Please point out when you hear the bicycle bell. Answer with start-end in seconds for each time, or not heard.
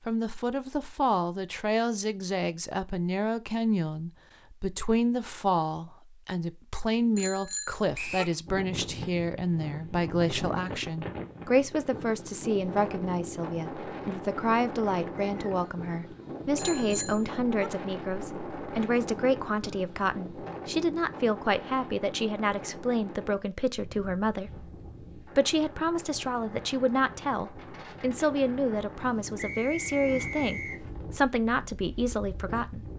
7.2-8.2, 16.6-17.7.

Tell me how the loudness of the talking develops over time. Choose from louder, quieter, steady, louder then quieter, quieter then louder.
steady.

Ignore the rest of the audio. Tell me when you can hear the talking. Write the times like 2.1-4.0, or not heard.
0.1-32.8.